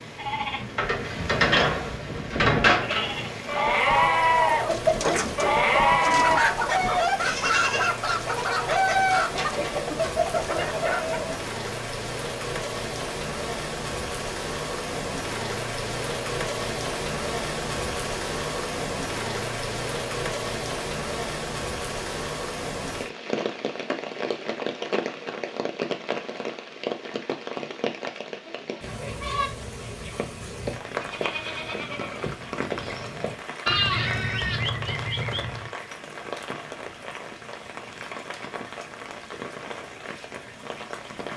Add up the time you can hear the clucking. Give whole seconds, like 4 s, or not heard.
7 s.